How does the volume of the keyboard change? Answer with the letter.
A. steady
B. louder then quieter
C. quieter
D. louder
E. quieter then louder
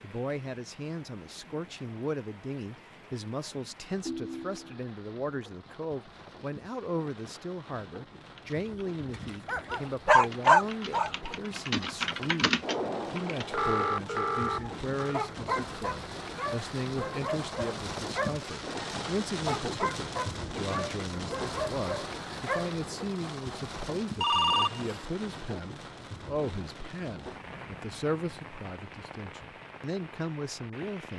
D.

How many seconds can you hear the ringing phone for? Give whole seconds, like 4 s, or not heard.
4 s.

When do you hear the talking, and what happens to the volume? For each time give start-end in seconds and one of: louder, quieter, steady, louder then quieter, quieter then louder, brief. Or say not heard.
0.0-31.1 steady.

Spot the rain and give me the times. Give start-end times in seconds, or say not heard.
0.0-31.1.